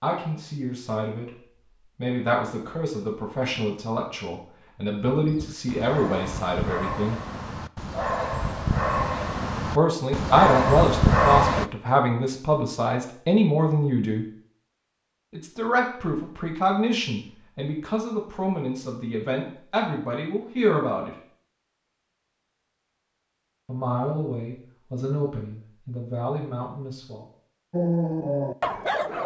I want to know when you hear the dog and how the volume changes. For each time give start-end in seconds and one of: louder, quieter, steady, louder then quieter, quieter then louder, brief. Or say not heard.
5.2-11.7 louder
27.7-29.2 brief.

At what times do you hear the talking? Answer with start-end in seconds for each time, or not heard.
0.0-1.3, 1.9-7.2, 9.7-14.2, 15.3-21.1, 23.6-27.2.